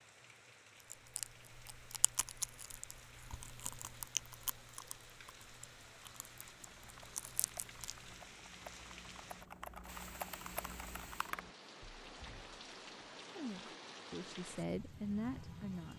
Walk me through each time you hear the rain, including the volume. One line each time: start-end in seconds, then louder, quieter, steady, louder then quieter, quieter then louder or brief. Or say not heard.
0.0-15.9 louder.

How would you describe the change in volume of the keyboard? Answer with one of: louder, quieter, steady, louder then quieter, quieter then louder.
louder.